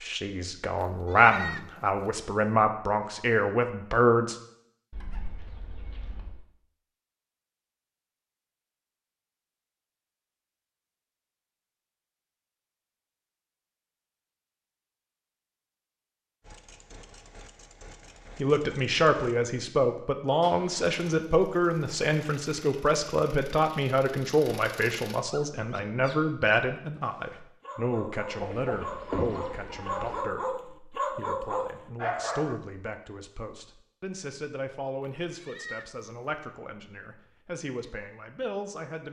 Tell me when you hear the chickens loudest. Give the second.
29 s.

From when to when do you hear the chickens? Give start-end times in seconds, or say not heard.
4.9-6.4, 28.4-30.2.